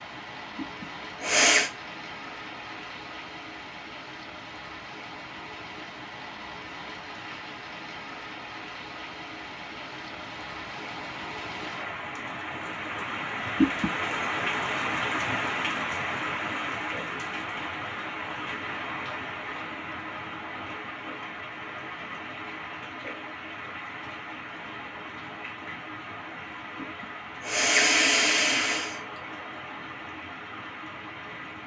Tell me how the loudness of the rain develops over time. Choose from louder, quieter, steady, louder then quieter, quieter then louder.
louder then quieter.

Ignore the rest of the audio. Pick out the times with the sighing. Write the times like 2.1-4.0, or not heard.
0.6-1.7, 13.6-14.3, 26.8-29.0.